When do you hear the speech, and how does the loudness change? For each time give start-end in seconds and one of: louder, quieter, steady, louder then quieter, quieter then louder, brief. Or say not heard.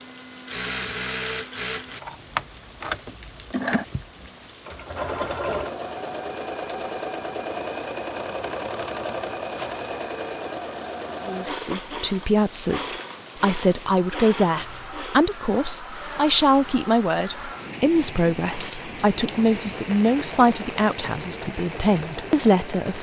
11.2-22.9 steady.